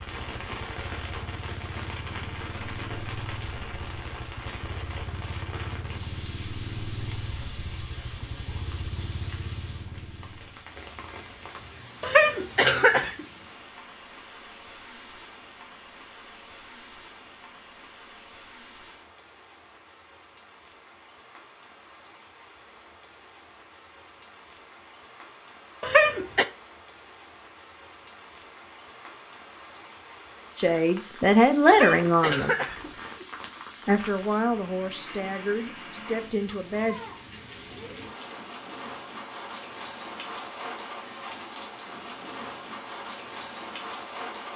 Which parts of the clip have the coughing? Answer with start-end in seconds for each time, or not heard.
12.0-13.2, 25.8-26.4, 31.6-33.2.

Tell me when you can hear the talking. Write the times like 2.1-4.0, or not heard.
30.6-32.5, 33.9-37.0.